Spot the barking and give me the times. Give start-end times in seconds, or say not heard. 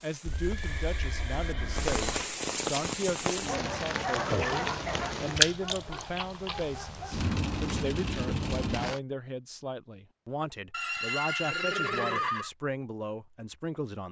3.5-7.2.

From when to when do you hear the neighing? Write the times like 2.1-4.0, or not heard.
0.2-2.3, 5.9-6.7, 10.7-12.5.